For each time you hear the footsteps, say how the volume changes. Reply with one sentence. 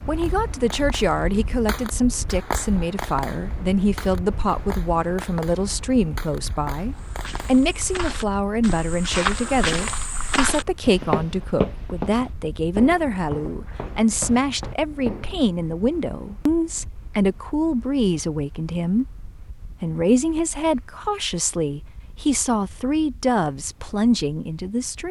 The footsteps can be heard from 6.9 to 15.5 s, getting louder then quieter.